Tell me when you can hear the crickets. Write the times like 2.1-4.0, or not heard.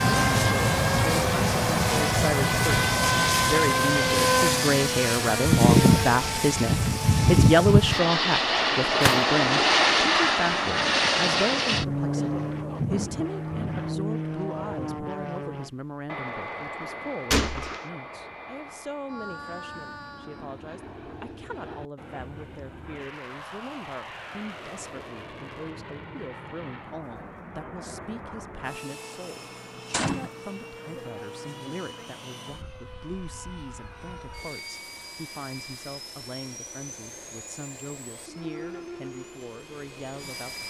not heard.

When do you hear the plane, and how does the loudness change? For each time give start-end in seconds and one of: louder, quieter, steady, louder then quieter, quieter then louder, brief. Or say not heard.
0.0-40.6 quieter.